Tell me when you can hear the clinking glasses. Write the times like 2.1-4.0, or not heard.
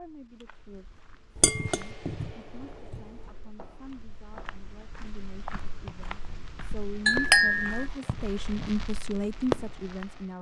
1.4-3.0, 7.0-7.8.